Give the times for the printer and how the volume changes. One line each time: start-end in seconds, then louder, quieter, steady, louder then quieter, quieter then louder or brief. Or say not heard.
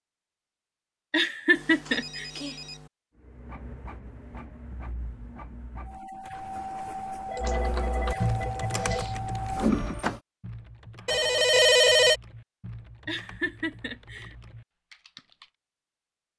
3.1-10.2 louder.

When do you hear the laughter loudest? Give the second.
2 s.